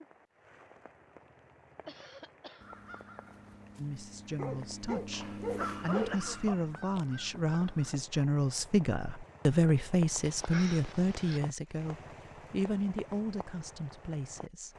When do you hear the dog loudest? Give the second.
6 s.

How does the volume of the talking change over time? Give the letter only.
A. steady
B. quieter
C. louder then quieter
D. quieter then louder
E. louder
C.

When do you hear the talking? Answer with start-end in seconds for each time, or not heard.
3.8-14.7.